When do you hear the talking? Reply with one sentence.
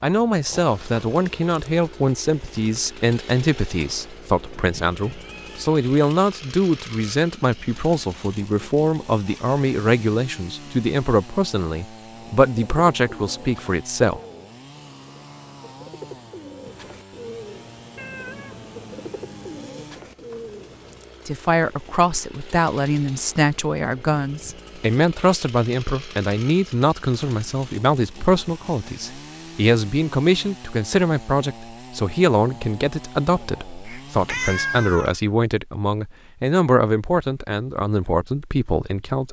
You can hear the talking from 0.0 to 14.2 s and from 21.2 to 39.2 s.